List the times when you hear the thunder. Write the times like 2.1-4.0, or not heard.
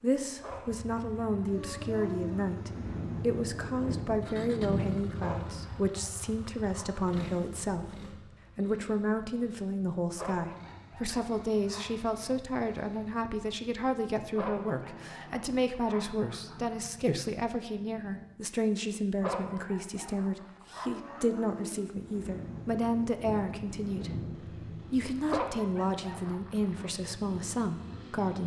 1.5-5.8, 20.9-25.4.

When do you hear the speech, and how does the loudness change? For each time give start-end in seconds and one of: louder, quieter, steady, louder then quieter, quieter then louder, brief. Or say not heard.
0.0-28.4 steady.